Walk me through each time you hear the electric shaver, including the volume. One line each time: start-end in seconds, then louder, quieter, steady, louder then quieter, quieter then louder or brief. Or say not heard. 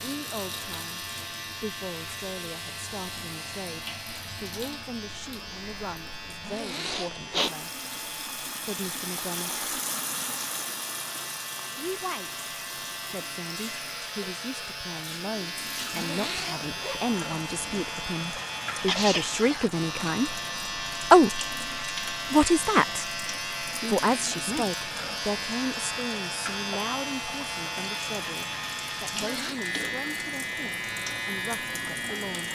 0.0-32.5 louder.